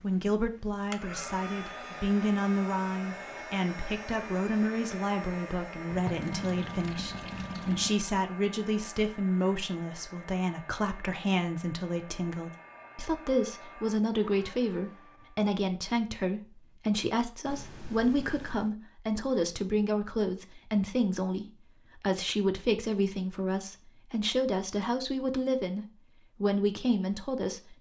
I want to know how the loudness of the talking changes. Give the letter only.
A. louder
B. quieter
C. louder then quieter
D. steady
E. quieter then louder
D.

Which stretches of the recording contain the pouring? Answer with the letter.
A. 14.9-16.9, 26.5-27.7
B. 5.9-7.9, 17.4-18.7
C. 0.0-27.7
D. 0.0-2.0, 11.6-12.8
B.